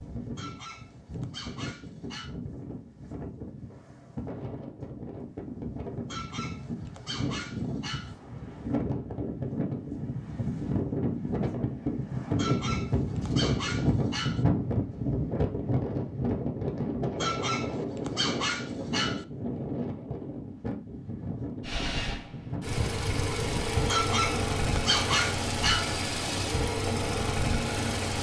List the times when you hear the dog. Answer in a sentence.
The dog can be heard from 0.3 to 2.4 s, from 6.0 to 8.2 s, from 12.3 to 14.4 s, from 17.1 to 19.2 s and from 23.9 to 25.9 s.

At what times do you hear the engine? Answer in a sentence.
You can hear the engine from 21.6 to 28.1 s.